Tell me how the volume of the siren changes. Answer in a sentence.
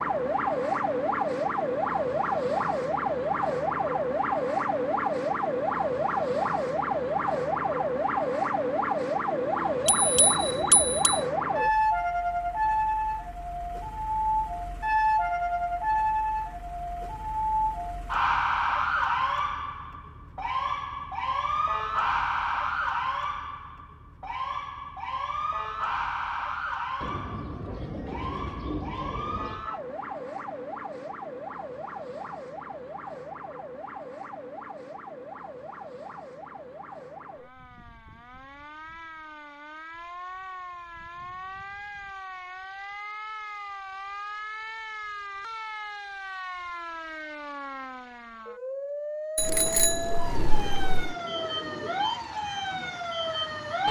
The loudness of the siren goes down, then up.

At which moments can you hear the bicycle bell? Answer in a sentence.
You can hear the bicycle bell from 9.8 to 11.2 s and from 49.4 to 51.1 s.